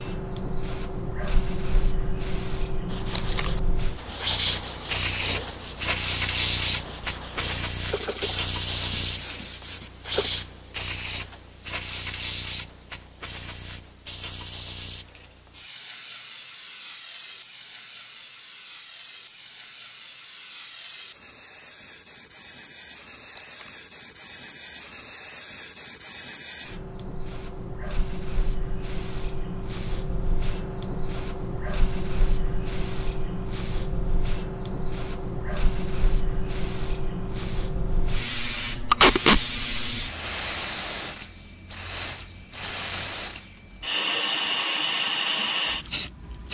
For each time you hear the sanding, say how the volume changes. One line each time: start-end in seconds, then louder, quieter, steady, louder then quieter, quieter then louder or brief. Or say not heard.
2.9-10.3 steady.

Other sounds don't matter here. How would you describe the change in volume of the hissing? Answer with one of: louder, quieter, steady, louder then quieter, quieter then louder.
quieter then louder.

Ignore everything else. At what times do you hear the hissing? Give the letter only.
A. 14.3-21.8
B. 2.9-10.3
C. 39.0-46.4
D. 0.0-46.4
D.